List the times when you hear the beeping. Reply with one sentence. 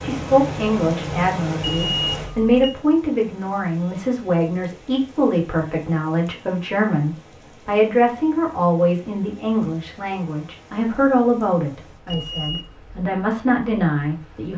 The beeping can be heard from 1.6 to 2.8 s and from 12.1 to 12.8 s.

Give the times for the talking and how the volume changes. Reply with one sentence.
You can hear the talking from 0.0 to 14.5 s, at a steady volume.